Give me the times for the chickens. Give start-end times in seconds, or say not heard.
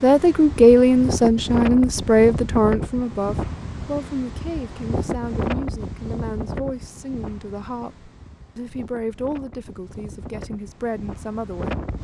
not heard.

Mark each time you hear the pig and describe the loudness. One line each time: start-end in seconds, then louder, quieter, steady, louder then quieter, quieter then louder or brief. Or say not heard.
not heard.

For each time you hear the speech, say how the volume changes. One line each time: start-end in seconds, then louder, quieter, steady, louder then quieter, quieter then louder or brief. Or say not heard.
0.0-11.8 quieter.